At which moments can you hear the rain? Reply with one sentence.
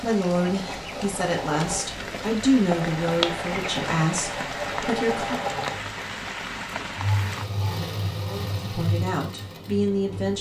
The rain can be heard from 0.0 to 7.5 s.